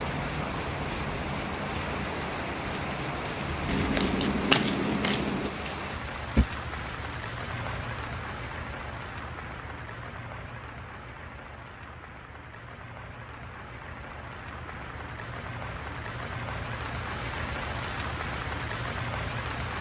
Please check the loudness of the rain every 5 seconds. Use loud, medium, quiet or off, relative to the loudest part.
loud, loud, medium, loud.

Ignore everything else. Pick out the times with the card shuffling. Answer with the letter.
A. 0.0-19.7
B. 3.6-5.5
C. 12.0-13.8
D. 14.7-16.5
B.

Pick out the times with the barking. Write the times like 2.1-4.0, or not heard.
not heard.